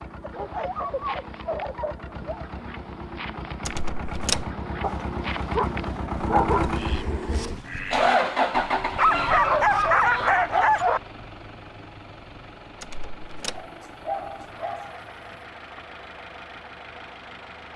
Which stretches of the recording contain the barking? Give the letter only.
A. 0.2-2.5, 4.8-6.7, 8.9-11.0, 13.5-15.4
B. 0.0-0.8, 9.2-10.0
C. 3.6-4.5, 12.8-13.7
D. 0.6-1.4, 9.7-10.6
A.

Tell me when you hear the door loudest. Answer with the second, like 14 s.
4 s.